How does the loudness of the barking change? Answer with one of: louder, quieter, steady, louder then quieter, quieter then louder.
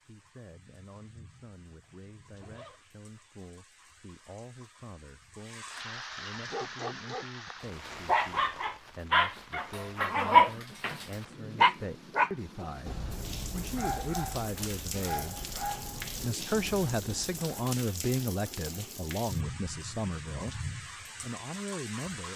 louder then quieter.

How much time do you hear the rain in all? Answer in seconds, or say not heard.
22 s.